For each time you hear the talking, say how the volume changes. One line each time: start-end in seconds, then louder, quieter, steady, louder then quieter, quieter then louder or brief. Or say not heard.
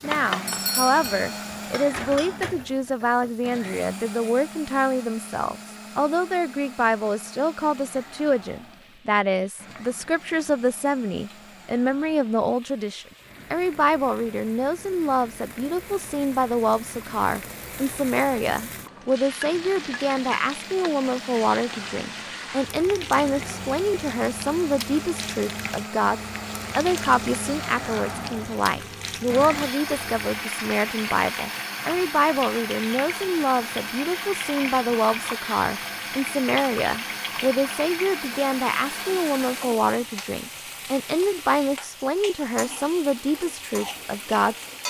0.0-44.5 steady.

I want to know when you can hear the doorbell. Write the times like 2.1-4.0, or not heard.
0.5-1.5.